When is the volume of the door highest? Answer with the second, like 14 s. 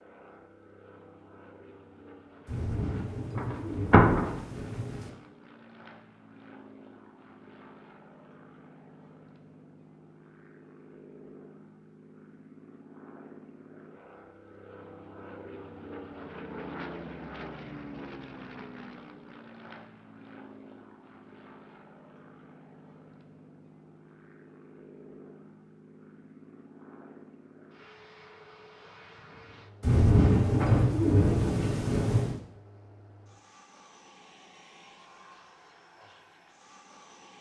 4 s.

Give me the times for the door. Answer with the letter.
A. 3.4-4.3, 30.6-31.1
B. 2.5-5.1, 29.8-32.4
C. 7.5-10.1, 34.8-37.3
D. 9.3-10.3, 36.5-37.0
A.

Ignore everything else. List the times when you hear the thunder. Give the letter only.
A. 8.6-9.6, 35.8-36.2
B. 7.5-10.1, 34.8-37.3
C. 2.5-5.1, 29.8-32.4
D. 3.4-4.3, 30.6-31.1
C.